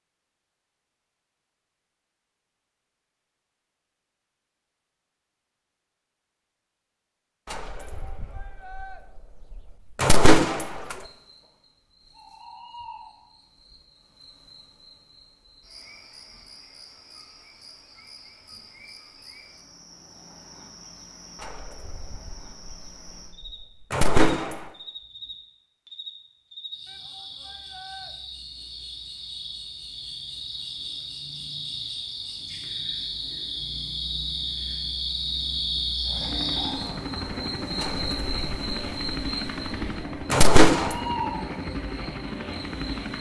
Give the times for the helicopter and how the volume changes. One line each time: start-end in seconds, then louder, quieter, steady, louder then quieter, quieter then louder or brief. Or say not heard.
36.0-43.1 steady.